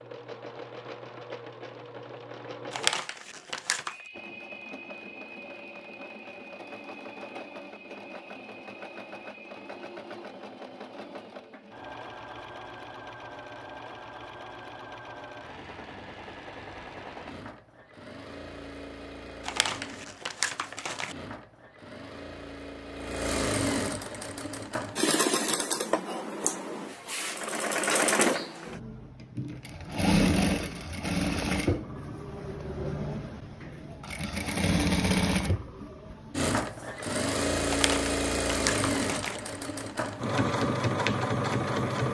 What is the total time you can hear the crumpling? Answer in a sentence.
You can hear the crumpling for 5 seconds altogether.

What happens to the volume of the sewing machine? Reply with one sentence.
The volume of the sewing machine goes up.